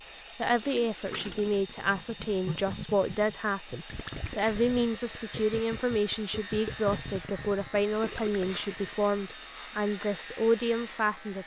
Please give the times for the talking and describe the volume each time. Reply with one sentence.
The talking can be heard from 0.3 to 11.4 s, at a steady volume.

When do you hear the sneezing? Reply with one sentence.
You can't hear the sneezing here.